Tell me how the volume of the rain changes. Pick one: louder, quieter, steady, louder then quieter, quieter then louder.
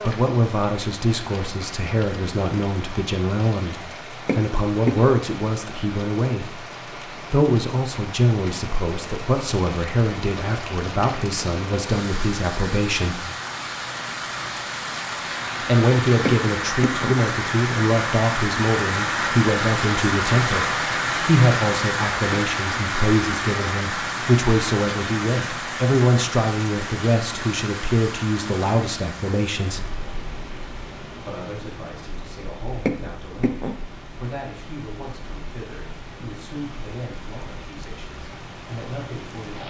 louder then quieter.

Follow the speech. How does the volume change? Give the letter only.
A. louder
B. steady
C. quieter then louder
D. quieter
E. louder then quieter
D.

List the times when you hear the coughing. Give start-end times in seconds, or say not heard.
4.2-5.0, 16.2-17.1, 32.9-33.8.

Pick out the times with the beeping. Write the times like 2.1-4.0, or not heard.
not heard.